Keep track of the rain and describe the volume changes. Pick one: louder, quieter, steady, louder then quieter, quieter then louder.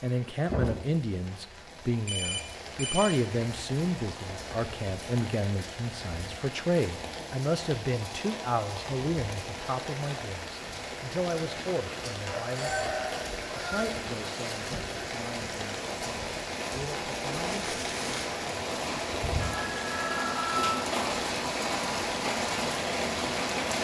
louder.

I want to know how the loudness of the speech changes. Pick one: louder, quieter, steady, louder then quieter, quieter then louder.
quieter.